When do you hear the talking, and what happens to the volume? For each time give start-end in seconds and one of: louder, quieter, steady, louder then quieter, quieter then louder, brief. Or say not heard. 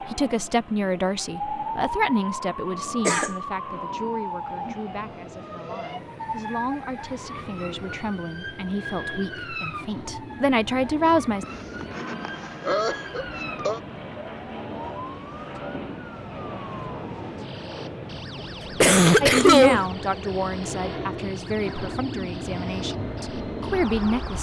0.1-11.4 quieter then louder
19.2-24.3 quieter then louder.